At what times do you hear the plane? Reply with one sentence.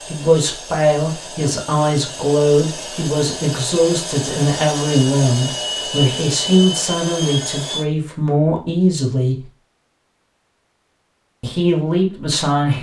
The plane can be heard from 0.0 to 7.8 s.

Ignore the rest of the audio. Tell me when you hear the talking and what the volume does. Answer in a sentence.
You can hear the talking from 0.1 to 9.4 s, at a steady volume; and briefly from 11.4 to 12.7 s.